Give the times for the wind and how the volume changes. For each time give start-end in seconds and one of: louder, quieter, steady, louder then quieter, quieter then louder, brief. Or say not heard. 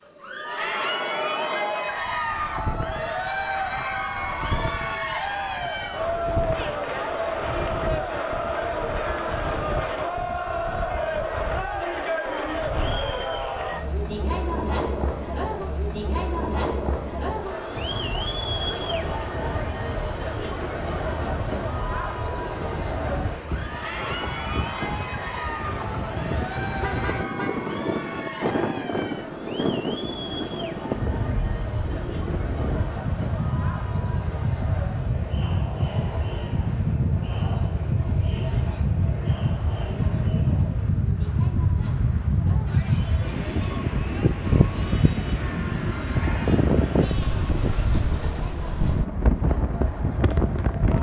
0.0-50.9 louder.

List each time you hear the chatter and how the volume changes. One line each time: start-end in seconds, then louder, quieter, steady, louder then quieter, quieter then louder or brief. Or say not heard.
0.1-50.9 quieter.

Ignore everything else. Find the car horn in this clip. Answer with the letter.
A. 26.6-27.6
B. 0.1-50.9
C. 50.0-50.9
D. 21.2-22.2
A.